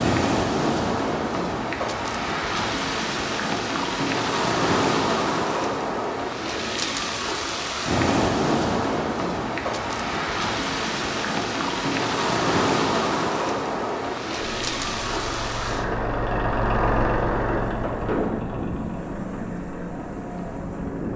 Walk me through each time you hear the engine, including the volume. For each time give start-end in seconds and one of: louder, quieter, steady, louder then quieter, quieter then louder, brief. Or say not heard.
14.4-21.1 louder then quieter.